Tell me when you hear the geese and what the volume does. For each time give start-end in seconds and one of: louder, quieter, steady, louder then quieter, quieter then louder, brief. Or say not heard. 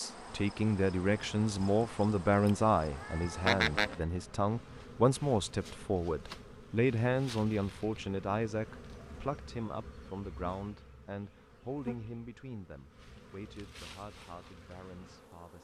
not heard.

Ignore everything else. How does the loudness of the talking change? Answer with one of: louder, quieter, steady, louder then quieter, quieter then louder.
quieter.